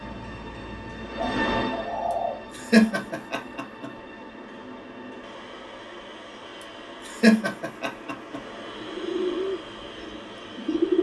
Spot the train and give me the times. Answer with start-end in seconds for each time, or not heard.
0.0-10.9.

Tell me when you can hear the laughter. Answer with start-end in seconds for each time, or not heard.
2.1-3.9, 6.6-8.4.